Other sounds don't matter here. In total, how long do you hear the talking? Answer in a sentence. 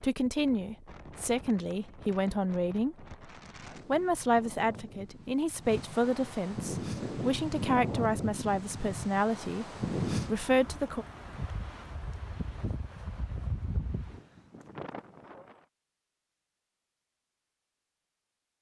The talking can be heard for 10 seconds in total.